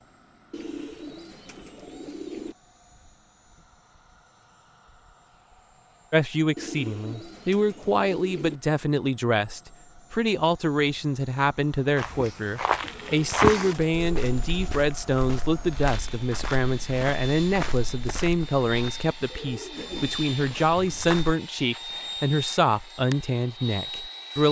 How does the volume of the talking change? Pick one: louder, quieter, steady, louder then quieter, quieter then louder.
steady.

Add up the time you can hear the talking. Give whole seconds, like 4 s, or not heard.
18 s.